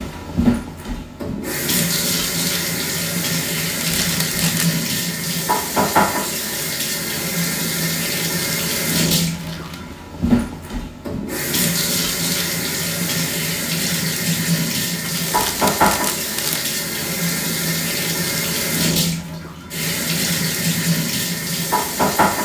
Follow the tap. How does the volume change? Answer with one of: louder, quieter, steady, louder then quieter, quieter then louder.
steady.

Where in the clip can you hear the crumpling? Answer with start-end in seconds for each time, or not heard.
3.8-4.8, 9.2-9.9, 15.0-16.7.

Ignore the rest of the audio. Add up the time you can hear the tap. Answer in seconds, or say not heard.
22 s.